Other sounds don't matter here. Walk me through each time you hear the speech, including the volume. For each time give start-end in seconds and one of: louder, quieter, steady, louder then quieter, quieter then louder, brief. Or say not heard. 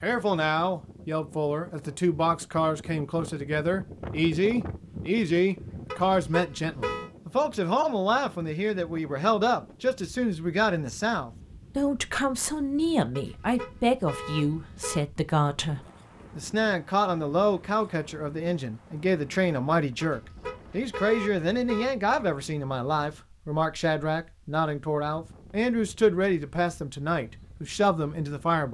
0.0-28.6 steady.